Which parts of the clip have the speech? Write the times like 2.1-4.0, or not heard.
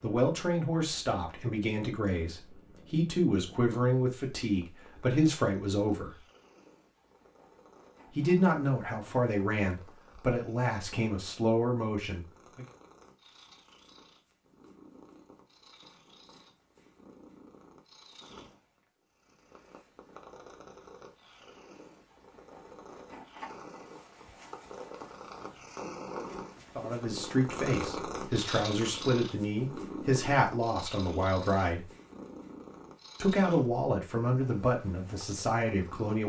0.0-6.2, 8.2-12.7, 26.8-31.9, 33.2-36.2.